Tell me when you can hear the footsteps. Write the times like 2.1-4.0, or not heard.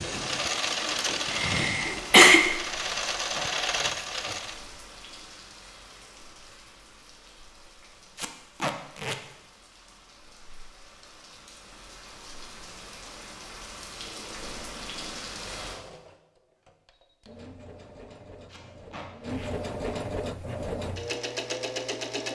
not heard.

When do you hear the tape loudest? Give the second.
9 s.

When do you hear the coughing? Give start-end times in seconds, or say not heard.
1.4-2.4.